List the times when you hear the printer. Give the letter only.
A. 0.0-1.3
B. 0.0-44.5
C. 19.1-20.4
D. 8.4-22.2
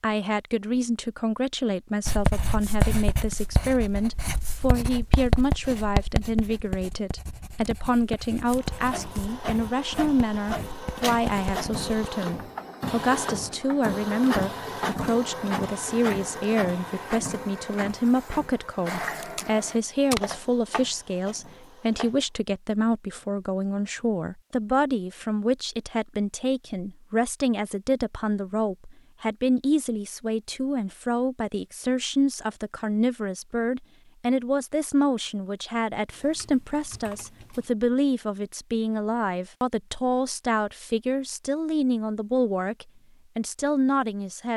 D.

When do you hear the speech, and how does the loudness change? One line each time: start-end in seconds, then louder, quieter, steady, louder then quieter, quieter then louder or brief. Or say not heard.
0.0-44.5 steady.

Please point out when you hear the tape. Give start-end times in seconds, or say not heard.
19.1-20.4.